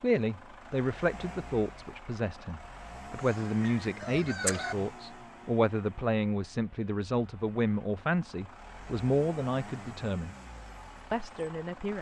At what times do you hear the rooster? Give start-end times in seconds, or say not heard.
3.1-4.8.